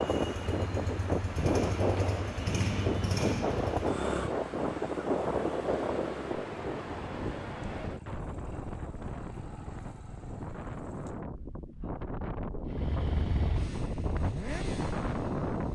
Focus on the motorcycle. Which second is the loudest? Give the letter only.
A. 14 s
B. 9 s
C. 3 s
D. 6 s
C.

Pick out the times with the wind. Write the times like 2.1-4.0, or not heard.
0.0-15.7.